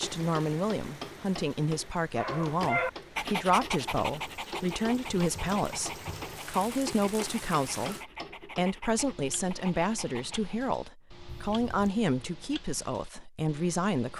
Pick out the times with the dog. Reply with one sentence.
The dog can be heard from 2.1 to 10.6 s.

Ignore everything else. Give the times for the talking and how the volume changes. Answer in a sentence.
You can hear the talking from 0.0 to 14.1 s, at a steady volume.